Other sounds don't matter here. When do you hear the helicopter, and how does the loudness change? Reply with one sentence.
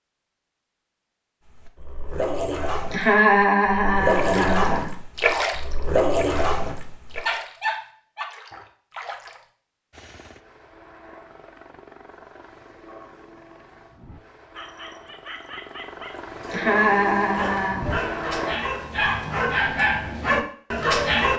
The helicopter can be heard from 9.9 to 18.6 s, getting louder.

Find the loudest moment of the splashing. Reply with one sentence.
The volume of the splashing peaks at 5 seconds.